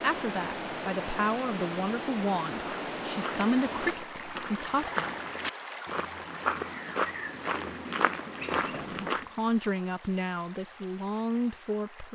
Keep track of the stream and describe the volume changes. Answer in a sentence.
The loudness of the stream goes down.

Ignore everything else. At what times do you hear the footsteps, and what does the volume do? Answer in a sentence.
You can hear the footsteps from 2.5 to 9.2 s, getting louder.